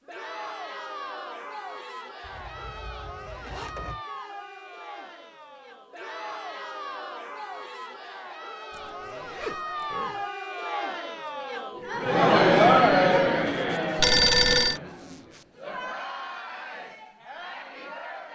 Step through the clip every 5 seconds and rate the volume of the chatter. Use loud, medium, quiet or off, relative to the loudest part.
quiet, quiet, loud, quiet.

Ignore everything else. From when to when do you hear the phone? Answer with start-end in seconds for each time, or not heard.
13.9-14.8.